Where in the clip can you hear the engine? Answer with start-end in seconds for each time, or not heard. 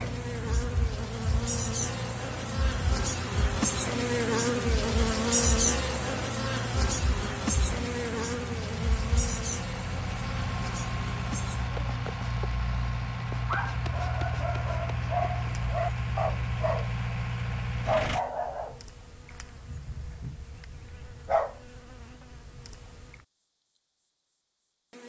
0.0-18.2.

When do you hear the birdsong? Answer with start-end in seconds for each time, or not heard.
not heard.